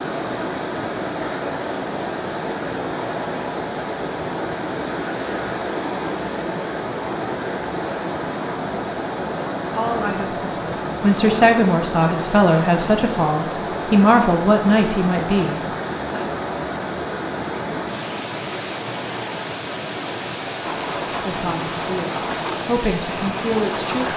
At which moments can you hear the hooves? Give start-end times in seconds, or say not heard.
20.6-24.1.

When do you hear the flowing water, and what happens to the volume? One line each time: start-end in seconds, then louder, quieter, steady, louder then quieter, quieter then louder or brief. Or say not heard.
0.0-24.1 steady.